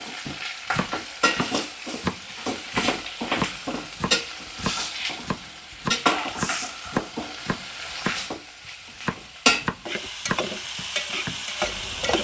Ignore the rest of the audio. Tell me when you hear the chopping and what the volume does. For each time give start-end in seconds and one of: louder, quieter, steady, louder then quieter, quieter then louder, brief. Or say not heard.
0.7-12.1 steady.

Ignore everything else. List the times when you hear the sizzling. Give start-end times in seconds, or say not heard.
0.0-12.1.